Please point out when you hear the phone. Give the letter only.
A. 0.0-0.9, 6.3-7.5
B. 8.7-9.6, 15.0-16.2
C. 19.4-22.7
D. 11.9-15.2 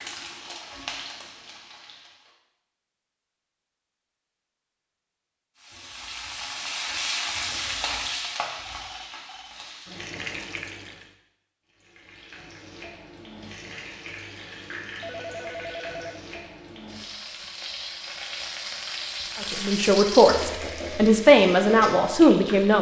B.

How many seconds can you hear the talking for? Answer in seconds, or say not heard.
3 s.